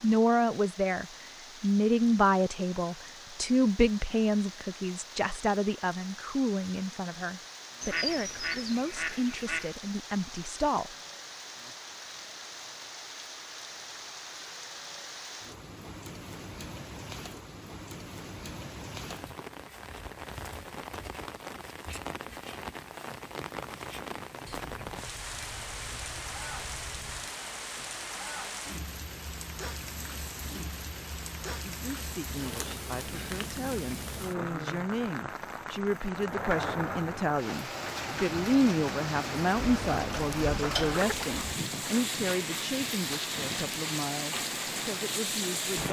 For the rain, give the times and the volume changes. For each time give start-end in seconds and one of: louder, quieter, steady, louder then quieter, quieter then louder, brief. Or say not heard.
0.0-45.8 louder.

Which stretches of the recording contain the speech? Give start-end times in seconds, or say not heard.
0.0-10.9, 31.6-45.8.